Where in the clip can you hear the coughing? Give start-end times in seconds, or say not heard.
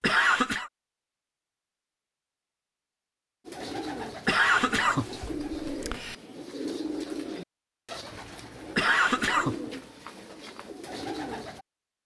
0.0-0.7, 4.2-6.2, 8.8-9.6.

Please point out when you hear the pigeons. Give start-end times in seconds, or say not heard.
3.5-11.7.